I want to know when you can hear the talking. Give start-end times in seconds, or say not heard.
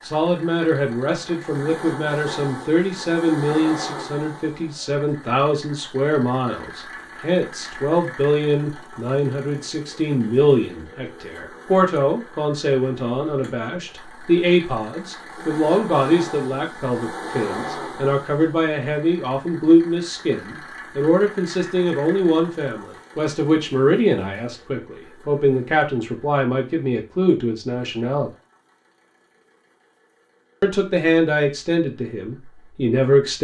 0.0-28.3, 30.6-33.3.